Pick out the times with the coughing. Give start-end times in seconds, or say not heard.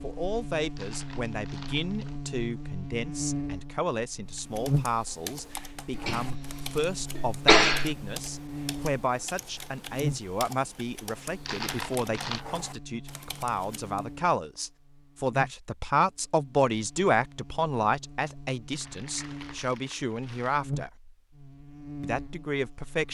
5.9-8.0.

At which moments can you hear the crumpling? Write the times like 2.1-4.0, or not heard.
0.8-2.2, 11.4-12.4, 18.7-20.6.